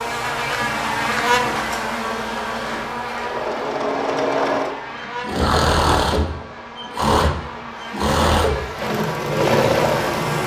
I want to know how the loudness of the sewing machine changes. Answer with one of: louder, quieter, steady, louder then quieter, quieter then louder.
louder.